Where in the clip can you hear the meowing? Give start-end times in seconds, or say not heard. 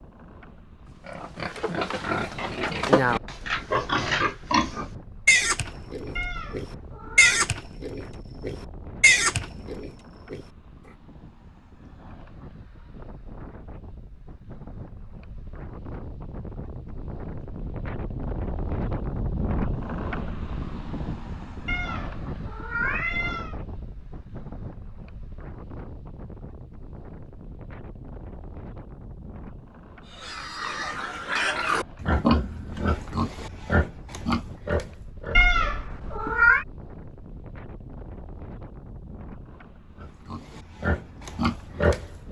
6.2-7.4, 21.6-23.6, 35.4-36.6.